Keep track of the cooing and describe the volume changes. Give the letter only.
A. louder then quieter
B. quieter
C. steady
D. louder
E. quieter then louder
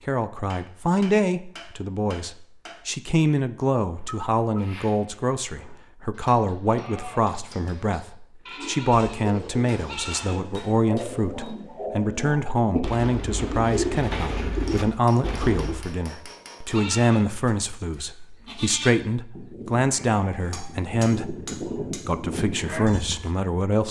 D.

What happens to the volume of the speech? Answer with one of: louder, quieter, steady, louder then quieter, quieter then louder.
steady.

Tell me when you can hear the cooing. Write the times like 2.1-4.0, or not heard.
8.6-15.8.